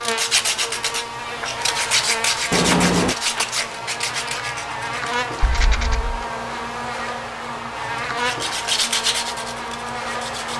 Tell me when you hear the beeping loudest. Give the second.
3 s.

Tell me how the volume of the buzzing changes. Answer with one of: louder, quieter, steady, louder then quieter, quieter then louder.
steady.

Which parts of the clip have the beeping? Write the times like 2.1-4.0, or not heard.
2.5-3.1, 5.4-6.2.